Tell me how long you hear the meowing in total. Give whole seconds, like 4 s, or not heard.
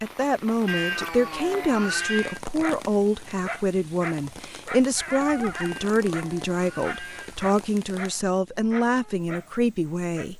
4 s.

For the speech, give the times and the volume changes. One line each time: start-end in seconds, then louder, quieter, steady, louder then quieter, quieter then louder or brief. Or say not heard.
0.0-10.3 steady.